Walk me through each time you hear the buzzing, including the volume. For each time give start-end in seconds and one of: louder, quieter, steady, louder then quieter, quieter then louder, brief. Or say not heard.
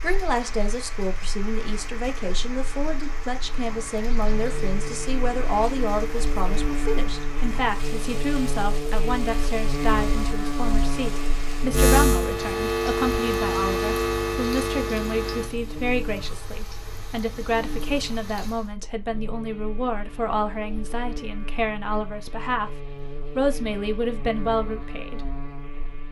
0.0-26.0 louder then quieter.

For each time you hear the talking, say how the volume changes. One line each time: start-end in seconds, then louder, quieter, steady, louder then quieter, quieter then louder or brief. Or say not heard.
0.0-25.3 steady.